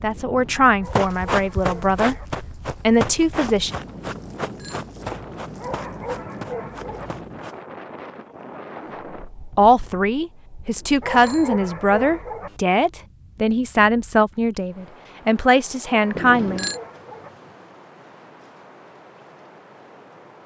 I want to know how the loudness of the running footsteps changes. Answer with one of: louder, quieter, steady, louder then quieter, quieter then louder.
quieter.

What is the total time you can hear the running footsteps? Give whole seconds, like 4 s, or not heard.
7 s.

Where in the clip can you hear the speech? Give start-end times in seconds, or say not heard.
0.0-3.7, 9.6-16.6.